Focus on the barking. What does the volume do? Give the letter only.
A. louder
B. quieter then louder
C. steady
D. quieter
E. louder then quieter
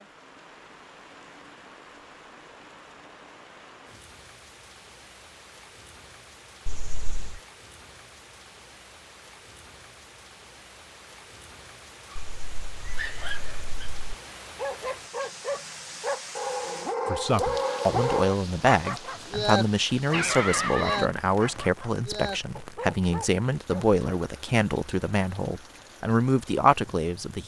E.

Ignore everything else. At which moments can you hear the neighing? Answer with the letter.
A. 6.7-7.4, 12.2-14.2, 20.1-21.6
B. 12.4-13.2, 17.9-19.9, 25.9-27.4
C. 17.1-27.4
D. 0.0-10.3
A.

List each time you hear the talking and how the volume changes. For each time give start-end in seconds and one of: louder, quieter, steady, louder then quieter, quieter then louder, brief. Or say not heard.
17.1-27.4 steady.